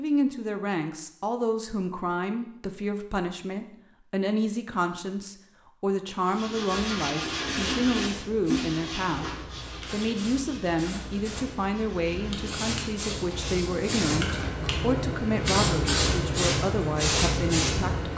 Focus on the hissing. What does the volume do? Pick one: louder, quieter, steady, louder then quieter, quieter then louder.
louder.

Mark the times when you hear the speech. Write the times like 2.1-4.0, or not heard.
0.0-9.3, 9.9-18.1.